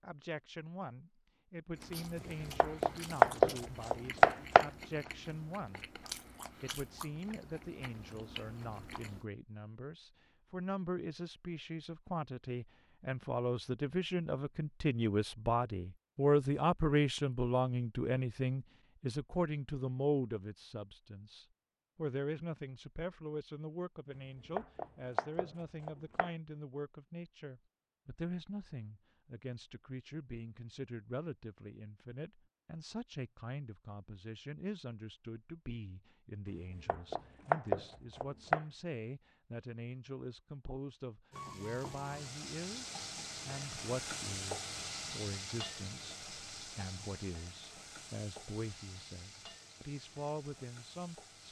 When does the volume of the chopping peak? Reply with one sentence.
The volume of the chopping peaks at 3 seconds.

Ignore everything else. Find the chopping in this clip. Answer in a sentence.
You can hear the chopping from 2.6 to 4.7 s, from 24.6 to 26.3 s and from 36.9 to 38.6 s.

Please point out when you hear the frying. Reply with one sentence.
You can hear the frying from 41.3 to 51.4 s.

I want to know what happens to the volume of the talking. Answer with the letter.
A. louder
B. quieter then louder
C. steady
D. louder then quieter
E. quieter
D.